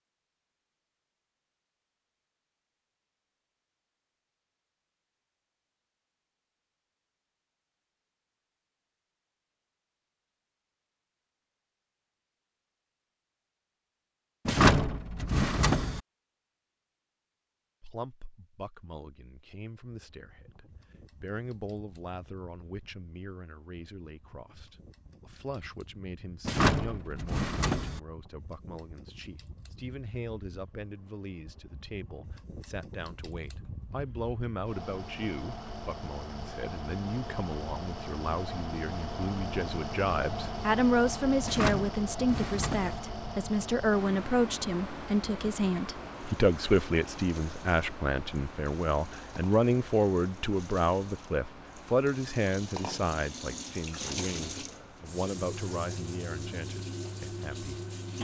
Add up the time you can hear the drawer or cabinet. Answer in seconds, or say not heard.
5 s.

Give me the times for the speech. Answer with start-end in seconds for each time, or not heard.
17.8-58.2.